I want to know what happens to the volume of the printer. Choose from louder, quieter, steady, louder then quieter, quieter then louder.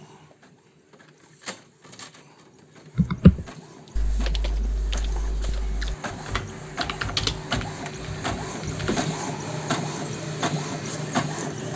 louder.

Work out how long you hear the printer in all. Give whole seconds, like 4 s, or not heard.
12 s.